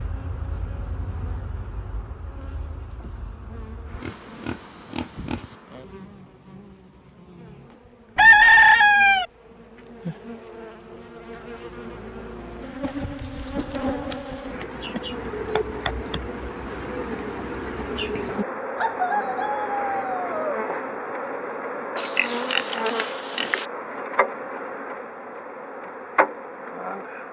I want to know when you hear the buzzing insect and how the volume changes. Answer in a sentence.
The buzzing insect can be heard from 0.0 to 27.2 s, getting louder.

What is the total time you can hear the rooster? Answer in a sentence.
You can hear the rooster for 3 seconds altogether.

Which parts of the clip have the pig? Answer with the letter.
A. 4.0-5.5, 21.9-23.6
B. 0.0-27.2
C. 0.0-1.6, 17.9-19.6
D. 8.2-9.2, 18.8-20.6
A.